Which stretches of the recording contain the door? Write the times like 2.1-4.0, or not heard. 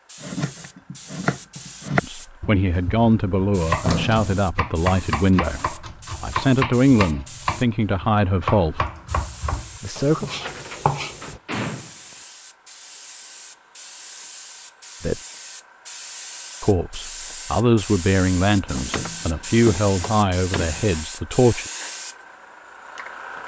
2.6-4.5, 10.3-12.2, 18.6-20.9.